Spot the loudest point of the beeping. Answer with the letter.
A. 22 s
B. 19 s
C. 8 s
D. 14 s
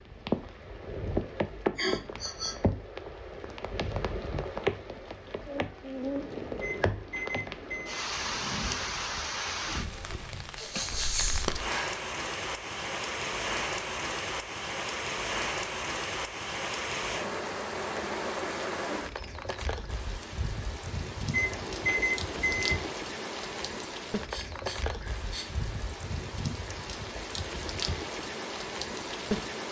A.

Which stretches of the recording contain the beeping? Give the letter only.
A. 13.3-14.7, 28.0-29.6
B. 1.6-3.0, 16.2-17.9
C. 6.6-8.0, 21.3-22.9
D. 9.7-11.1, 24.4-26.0
C.